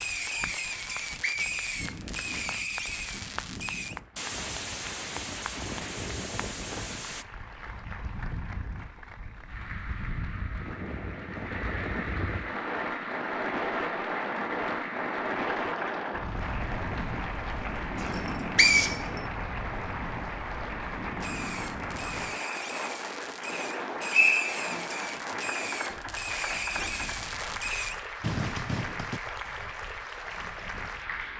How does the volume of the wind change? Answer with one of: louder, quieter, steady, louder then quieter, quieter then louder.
louder then quieter.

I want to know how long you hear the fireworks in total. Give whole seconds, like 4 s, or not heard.
15 s.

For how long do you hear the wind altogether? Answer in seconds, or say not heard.
31 s.